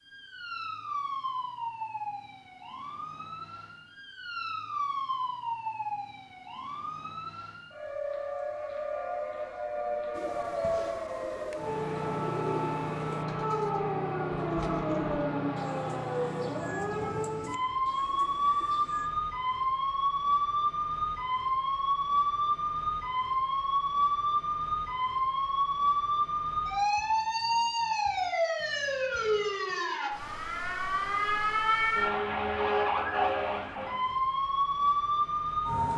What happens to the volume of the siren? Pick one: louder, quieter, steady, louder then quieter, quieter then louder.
louder.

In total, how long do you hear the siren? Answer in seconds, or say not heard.
36 s.